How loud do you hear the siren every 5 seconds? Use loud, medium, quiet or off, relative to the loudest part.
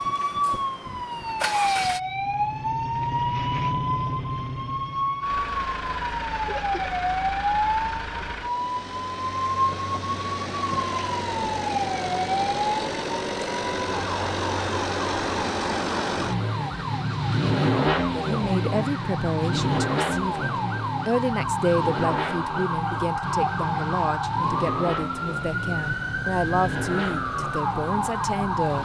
loud, loud, loud, medium, loud, loud.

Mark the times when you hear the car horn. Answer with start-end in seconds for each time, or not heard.
not heard.